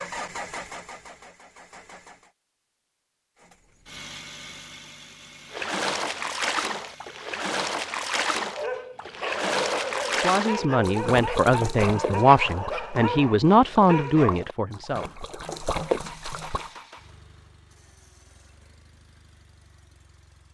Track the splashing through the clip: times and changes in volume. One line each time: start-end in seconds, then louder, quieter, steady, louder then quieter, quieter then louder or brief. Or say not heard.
5.5-16.7 quieter then louder.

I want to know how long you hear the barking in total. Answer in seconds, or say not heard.
6 s.